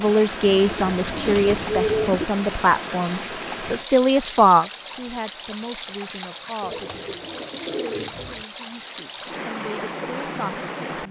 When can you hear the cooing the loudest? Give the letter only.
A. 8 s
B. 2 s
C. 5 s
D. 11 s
B.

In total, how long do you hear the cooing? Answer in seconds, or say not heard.
4 s.